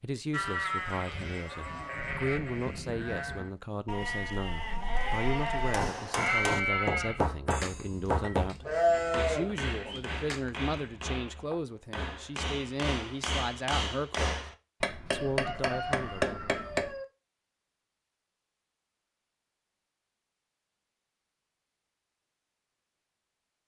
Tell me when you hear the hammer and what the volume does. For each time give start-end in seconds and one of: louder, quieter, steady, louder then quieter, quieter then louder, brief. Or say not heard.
5.6-16.9 quieter then louder.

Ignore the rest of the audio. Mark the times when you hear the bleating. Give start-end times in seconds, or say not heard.
0.3-11.1.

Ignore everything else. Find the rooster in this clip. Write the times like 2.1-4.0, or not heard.
15.1-17.1.